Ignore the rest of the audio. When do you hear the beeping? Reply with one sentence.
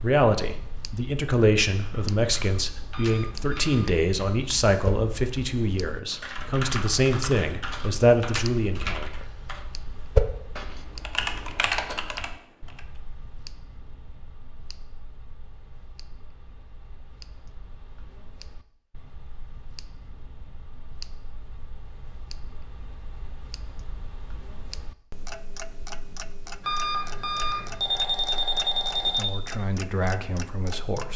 The beeping can be heard from 2.9 to 3.8 s and from 26.6 to 29.4 s.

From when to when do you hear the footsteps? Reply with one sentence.
The footsteps can't be heard in this clip.